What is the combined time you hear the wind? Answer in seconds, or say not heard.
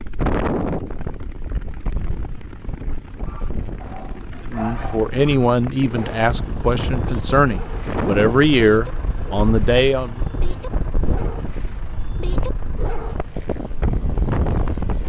15 s.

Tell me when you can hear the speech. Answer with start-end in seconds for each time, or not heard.
4.5-10.2.